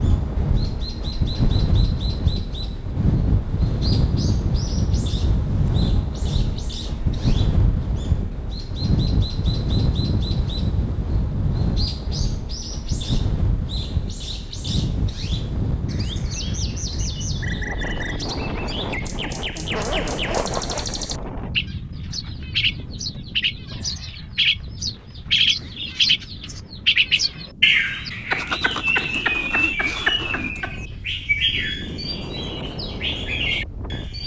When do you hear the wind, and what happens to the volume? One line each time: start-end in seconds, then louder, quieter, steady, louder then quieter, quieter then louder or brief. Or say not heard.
0.0-34.2 quieter.